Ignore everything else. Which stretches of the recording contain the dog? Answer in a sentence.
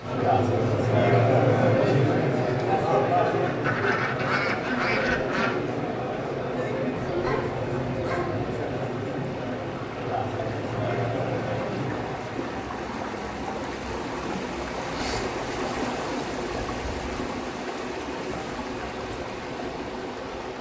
You can hear the dog from 7.0 to 8.5 s.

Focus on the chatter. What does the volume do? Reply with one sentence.
The loudness of the chatter goes down.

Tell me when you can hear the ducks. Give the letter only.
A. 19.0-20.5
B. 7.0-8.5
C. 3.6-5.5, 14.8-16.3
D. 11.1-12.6
C.